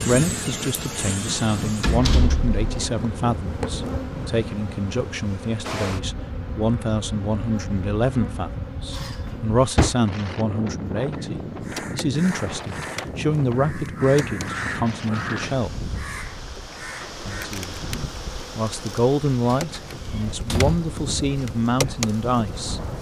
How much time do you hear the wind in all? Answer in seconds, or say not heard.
23 s.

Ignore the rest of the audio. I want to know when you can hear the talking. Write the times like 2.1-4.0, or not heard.
0.1-15.8, 17.2-17.8, 18.6-22.8.